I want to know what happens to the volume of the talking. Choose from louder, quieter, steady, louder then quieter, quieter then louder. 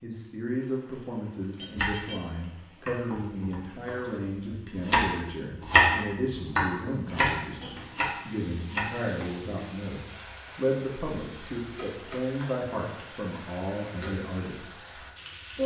steady.